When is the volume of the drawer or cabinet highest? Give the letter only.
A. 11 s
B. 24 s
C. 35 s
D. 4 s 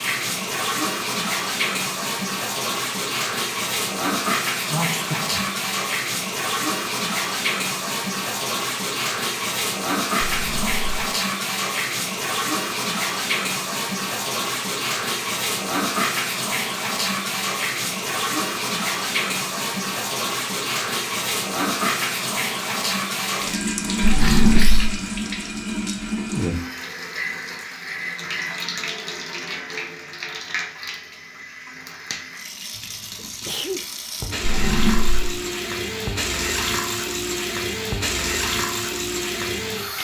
B.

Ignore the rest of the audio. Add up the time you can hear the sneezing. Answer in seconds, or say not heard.
3 s.